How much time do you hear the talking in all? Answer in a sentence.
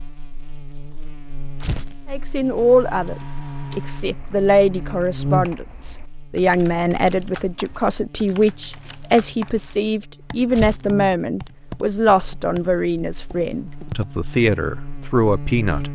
You can hear the talking for 14 seconds altogether.